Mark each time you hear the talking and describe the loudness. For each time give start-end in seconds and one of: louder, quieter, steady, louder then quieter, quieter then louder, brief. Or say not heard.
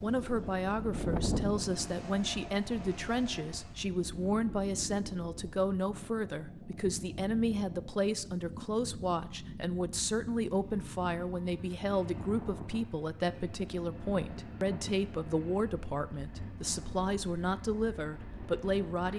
0.0-19.1 steady.